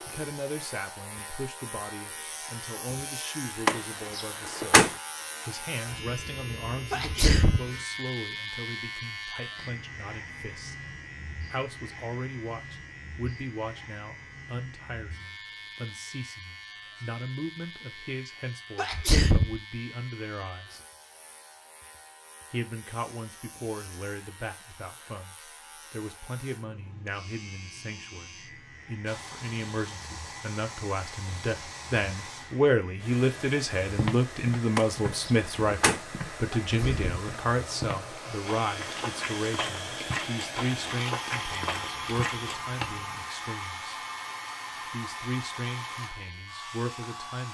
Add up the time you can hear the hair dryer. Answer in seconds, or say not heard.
18 s.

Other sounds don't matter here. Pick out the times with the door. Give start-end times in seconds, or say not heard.
3.6-4.9, 34.8-36.0.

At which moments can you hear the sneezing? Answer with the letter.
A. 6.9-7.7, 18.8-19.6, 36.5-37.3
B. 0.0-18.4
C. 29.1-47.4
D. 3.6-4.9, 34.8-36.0
A.